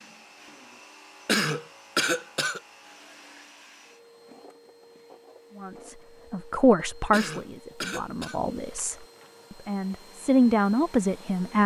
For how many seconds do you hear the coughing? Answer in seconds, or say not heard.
3 s.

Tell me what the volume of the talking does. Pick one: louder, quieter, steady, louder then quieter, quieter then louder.
quieter then louder.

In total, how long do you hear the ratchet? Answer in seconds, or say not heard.
not heard.